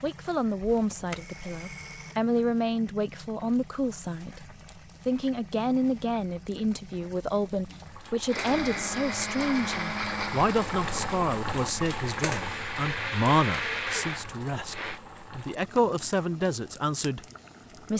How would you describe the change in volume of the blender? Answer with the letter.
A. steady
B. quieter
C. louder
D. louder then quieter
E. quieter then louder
E.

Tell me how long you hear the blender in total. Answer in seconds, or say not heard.
7 s.